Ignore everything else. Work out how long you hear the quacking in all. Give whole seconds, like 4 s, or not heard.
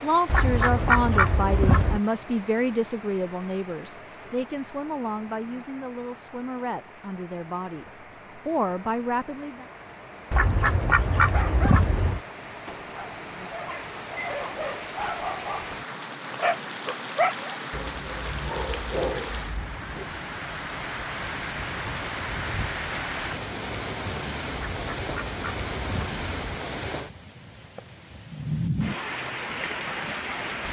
6 s.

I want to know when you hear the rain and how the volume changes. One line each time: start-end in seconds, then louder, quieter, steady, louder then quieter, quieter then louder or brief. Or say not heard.
0.0-30.6 louder.